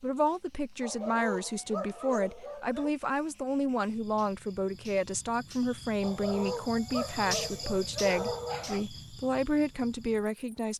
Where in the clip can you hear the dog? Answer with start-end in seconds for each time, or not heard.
0.8-2.9, 6.0-8.8.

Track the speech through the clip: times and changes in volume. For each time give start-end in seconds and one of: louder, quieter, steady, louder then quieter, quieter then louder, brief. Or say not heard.
0.0-10.7 steady.